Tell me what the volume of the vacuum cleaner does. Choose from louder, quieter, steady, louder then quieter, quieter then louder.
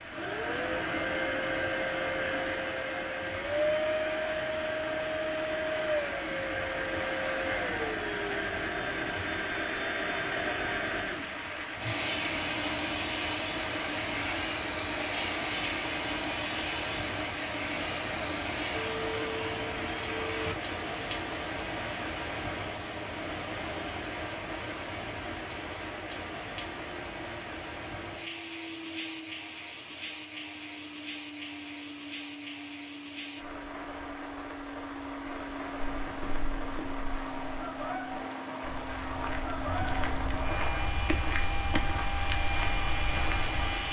quieter then louder.